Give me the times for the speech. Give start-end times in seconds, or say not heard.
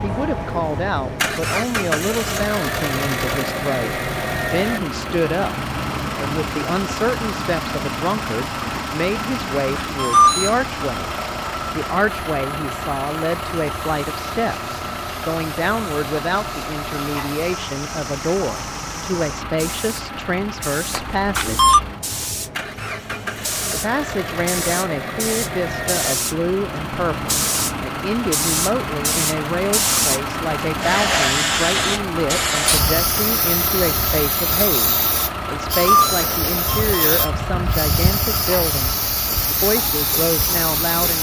0.0-11.1, 11.8-21.8, 23.7-39.0, 39.6-41.1.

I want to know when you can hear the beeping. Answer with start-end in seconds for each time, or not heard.
9.9-10.6, 20.9-21.8, 35.7-37.3.